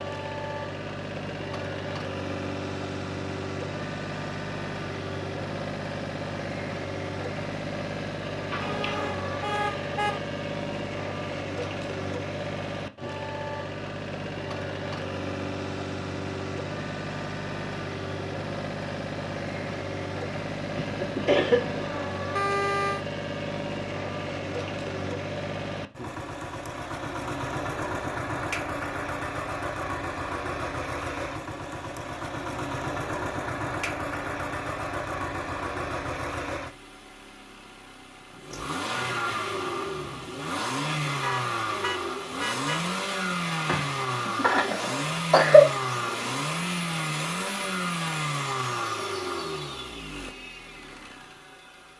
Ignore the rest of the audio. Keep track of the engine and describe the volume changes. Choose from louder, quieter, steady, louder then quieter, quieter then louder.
steady.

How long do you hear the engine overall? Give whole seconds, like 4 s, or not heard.
52 s.